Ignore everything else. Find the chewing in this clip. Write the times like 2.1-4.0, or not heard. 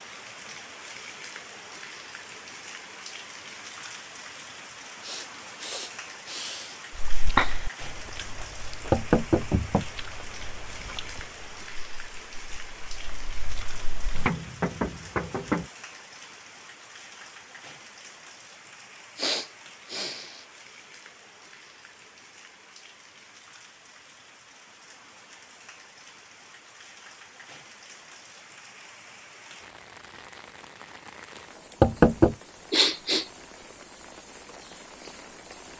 7.0-14.3.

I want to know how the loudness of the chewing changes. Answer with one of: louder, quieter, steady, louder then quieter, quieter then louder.
quieter then louder.